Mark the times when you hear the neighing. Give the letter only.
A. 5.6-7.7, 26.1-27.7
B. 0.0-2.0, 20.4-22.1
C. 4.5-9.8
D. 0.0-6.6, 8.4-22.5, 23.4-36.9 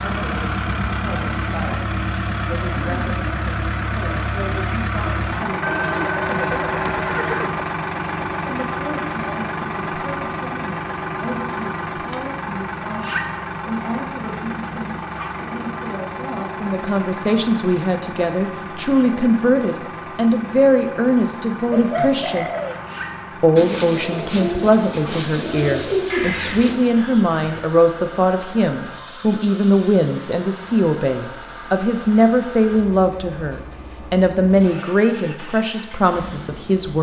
A.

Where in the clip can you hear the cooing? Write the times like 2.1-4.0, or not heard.
21.6-26.8.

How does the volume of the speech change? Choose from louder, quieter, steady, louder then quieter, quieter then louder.
louder.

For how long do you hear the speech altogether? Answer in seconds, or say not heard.
34 s.